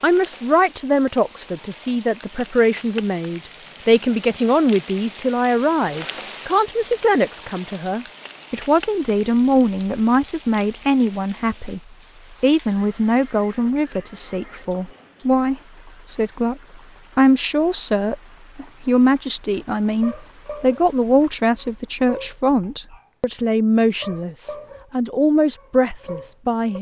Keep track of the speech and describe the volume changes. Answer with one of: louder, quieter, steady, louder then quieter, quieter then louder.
steady.